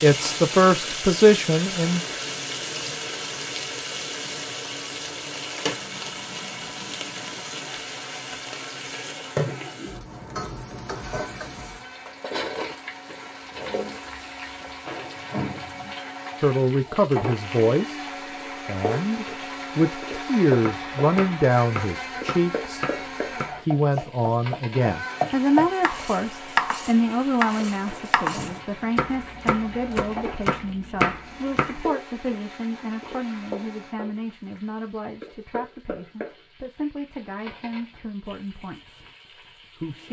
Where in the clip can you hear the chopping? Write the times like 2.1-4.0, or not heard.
20.6-31.8.